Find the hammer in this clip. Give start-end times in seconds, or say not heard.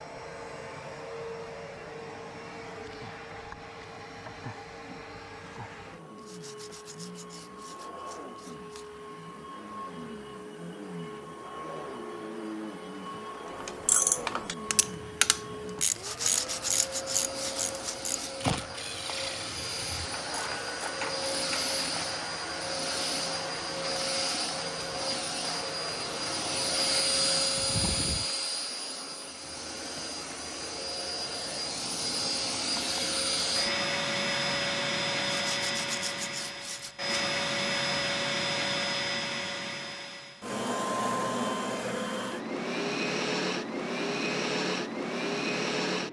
not heard.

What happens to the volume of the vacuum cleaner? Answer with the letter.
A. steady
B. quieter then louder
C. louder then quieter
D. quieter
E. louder
E.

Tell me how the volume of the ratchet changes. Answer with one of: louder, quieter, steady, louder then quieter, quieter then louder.
quieter.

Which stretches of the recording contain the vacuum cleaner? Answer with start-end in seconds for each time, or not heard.
0.0-46.0.